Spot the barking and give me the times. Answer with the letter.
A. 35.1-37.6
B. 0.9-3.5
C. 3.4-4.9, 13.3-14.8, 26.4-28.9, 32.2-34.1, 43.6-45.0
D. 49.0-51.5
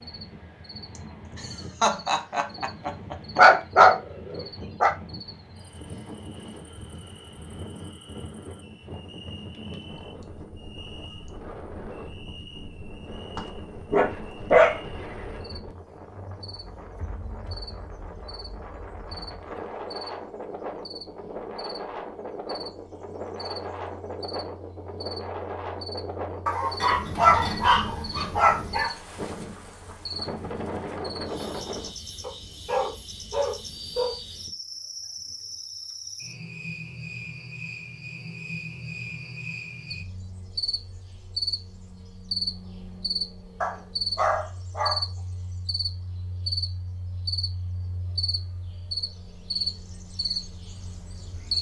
C.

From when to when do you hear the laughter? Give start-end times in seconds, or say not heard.
0.9-3.5.